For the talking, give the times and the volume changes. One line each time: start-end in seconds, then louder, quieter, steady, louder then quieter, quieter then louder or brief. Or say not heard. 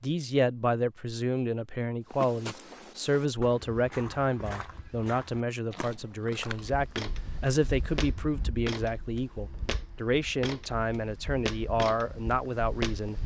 0.0-13.2 steady.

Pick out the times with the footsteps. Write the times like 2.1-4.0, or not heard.
2.1-13.0.